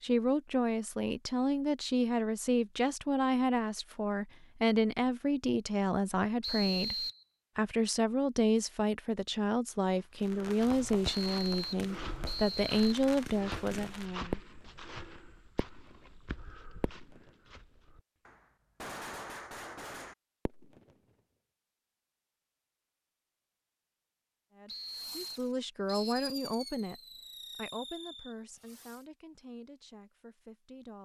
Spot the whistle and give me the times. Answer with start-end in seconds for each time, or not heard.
6.4-7.2, 11.2-12.8, 24.6-26.2.